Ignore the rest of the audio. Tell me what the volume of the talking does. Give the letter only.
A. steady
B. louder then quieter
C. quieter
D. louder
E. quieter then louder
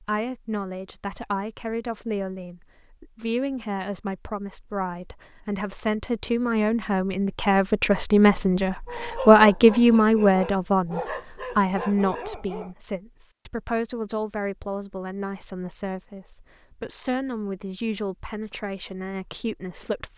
B.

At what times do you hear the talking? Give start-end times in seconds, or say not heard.
0.0-20.1.